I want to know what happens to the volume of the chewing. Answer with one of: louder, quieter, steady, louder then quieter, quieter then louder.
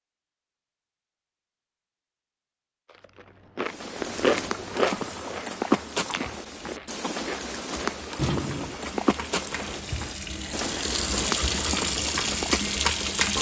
quieter then louder.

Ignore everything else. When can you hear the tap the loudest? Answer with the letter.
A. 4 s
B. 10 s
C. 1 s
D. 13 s
D.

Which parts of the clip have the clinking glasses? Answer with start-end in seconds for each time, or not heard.
not heard.